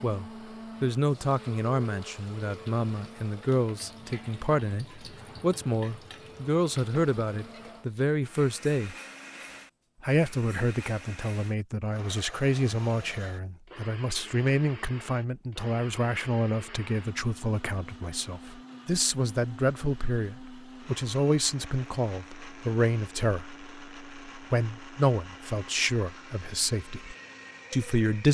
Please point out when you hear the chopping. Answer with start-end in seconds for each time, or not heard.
not heard.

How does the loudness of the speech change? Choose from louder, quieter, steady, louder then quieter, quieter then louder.
steady.